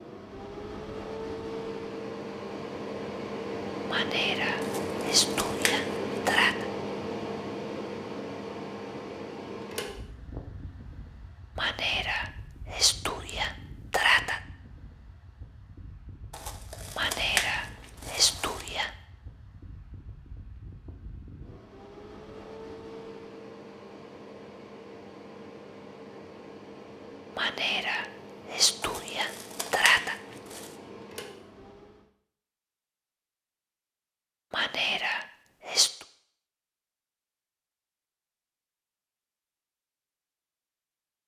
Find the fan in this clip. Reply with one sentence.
The fan can be heard from 0.0 to 32.0 s.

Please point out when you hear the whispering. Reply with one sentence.
The whispering can be heard from 3.9 to 6.7 s, from 11.6 to 14.4 s, from 16.9 to 18.9 s, from 27.4 to 30.1 s and from 34.5 to 36.0 s.